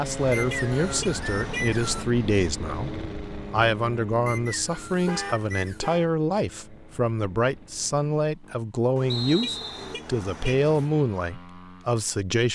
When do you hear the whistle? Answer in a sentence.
The whistle can be heard from 0.3 to 2.0 s, from 4.2 to 5.8 s and from 9.1 to 9.9 s.